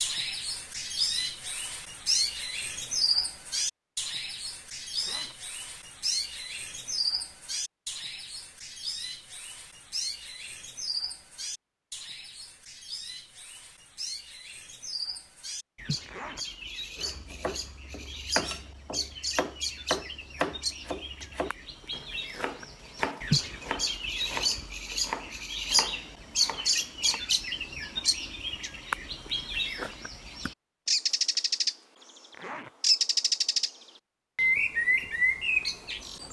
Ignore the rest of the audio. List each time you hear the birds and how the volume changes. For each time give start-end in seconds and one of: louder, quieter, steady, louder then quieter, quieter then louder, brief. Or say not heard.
0.0-31.8 quieter then louder
32.8-33.7 brief
34.4-36.2 brief.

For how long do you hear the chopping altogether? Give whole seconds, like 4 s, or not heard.
10 s.